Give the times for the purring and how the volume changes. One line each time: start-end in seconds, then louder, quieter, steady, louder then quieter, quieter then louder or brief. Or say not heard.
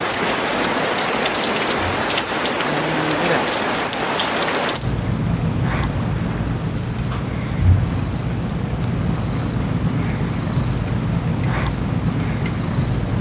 0.0-13.1 louder.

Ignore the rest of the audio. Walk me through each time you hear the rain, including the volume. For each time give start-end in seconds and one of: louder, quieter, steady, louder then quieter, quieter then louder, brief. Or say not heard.
0.0-13.1 quieter.